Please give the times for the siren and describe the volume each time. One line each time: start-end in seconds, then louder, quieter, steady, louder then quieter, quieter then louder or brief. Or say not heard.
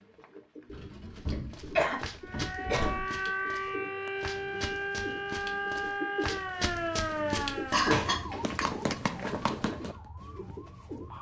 2.2-11.1 quieter.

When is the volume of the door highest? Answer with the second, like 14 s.
8 s.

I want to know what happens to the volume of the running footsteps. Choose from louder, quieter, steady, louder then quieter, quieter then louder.
louder.